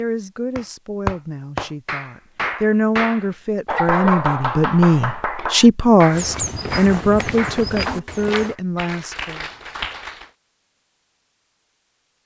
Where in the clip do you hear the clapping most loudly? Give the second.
4 s.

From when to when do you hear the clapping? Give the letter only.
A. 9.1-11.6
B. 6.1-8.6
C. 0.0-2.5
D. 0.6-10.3
D.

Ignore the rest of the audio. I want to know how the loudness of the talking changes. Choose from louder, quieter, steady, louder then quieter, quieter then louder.
louder then quieter.